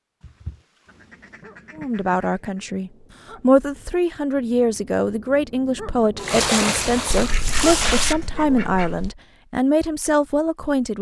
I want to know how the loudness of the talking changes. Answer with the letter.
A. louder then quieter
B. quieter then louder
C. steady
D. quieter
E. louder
C.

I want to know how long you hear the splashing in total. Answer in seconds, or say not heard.
2 s.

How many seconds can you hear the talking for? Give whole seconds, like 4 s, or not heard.
9 s.